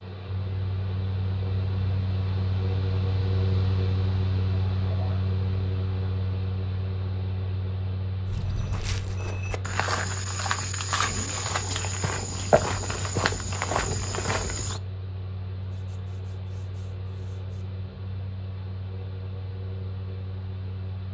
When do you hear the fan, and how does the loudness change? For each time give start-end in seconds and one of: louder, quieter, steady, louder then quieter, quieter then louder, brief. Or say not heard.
0.0-21.1 quieter.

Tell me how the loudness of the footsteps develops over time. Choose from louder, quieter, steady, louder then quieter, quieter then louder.
louder.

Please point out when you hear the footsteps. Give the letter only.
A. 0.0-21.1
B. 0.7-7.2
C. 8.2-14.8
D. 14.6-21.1
C.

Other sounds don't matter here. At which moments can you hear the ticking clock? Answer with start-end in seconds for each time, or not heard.
not heard.